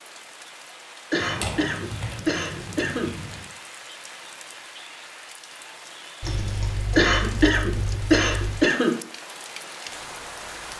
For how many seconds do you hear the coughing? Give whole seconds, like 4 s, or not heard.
4 s.